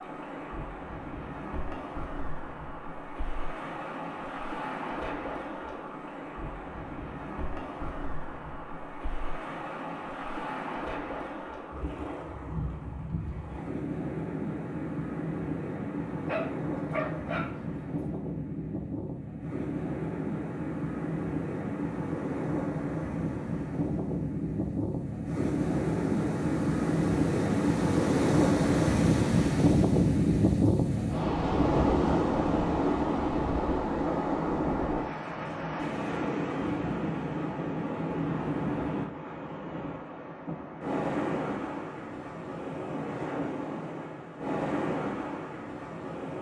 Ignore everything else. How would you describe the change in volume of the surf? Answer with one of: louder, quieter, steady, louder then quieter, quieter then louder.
louder then quieter.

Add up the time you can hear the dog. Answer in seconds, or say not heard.
2 s.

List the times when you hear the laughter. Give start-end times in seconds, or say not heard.
not heard.